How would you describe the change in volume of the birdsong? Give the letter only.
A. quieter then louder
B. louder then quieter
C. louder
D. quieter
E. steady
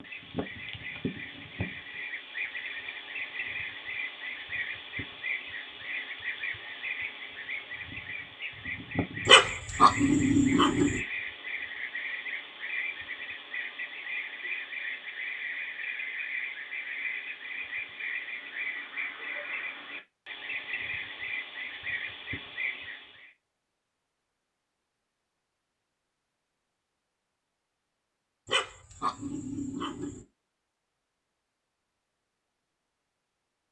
E.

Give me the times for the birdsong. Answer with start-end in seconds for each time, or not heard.
0.0-23.3.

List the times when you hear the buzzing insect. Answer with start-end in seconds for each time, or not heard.
not heard.